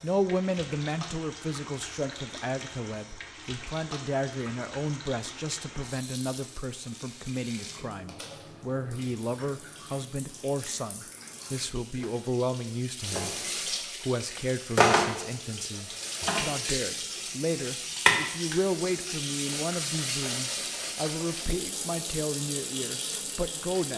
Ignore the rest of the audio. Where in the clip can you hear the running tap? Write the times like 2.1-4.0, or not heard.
0.0-23.9.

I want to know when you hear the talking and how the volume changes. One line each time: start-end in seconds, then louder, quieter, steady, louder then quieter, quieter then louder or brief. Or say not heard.
0.0-23.9 steady.